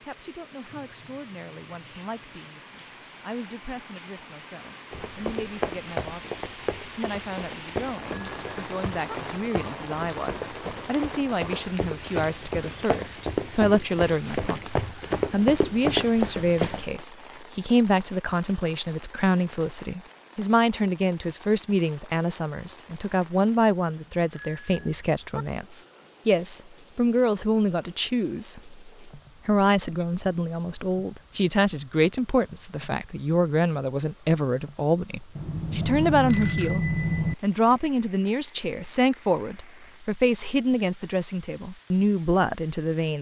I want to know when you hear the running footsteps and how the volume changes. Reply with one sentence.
The running footsteps can be heard from 4.9 to 16.9 s, getting louder.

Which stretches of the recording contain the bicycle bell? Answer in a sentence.
The bicycle bell can be heard from 8.1 to 9.2 s, from 24.3 to 25.4 s and from 35.4 to 37.4 s.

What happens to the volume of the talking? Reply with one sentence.
The loudness of the talking goes up.